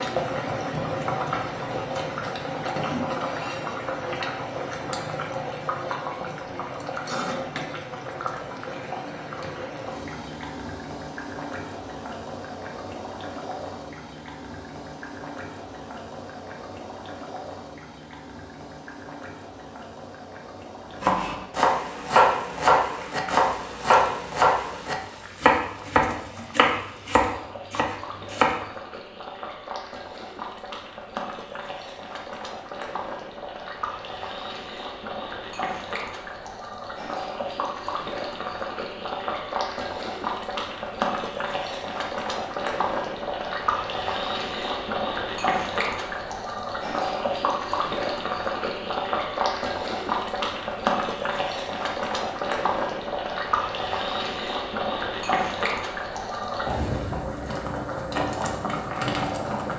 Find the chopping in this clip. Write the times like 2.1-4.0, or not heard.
21.0-28.6.